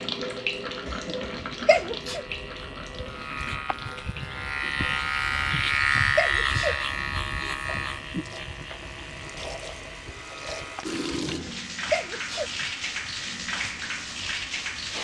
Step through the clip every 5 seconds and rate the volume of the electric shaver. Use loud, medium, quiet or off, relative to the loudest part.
medium, loud, quiet.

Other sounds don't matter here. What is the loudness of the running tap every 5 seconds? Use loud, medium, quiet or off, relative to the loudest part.
loud, medium, loud.